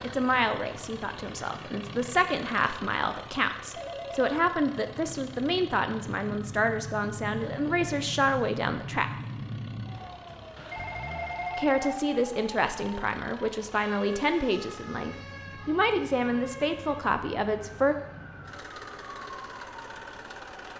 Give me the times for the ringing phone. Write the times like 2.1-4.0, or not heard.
3.8-4.3, 10.6-12.1.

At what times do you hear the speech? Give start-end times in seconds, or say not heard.
0.0-9.1, 11.6-17.9.